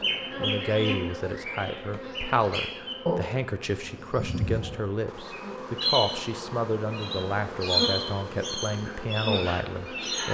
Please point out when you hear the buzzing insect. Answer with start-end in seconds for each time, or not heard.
0.0-10.2.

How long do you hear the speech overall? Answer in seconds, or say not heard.
10 s.